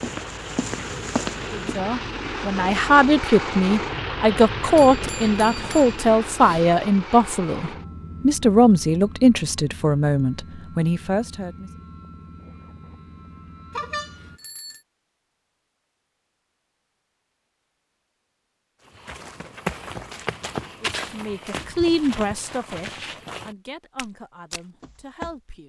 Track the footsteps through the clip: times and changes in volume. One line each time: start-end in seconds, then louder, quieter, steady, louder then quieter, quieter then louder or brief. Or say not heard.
0.0-1.8 brief
18.9-25.4 quieter.